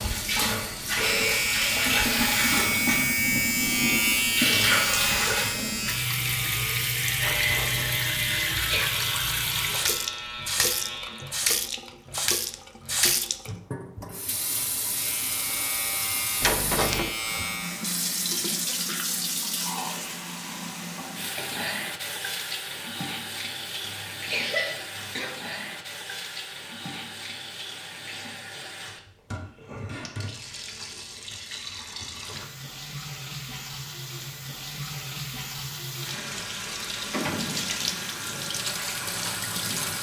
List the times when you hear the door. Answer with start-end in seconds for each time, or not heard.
7.2-8.0, 16.4-17.1, 36.5-37.9.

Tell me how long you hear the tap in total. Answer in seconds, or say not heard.
40 s.